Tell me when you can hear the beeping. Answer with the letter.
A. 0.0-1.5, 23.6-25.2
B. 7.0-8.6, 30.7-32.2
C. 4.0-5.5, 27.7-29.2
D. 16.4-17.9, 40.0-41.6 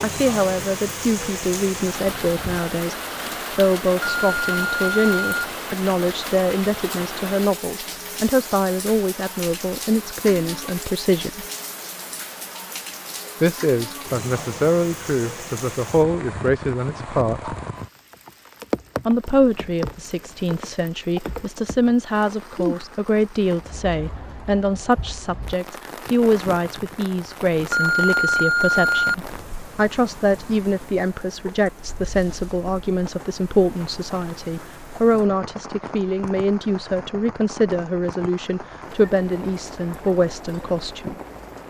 C.